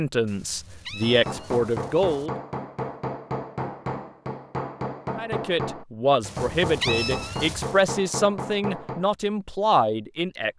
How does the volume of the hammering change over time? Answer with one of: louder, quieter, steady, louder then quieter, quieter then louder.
steady.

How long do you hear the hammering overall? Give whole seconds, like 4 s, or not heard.
8 s.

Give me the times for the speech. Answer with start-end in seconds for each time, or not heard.
0.0-2.3, 5.2-10.5.